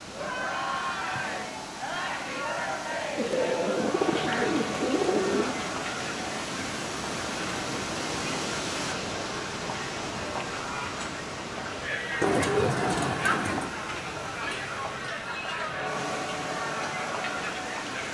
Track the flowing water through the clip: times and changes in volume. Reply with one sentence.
The flowing water can be heard from 0.0 to 18.0 s, getting louder then quieter.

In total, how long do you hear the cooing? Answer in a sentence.
The cooing can be heard for 4 seconds in total.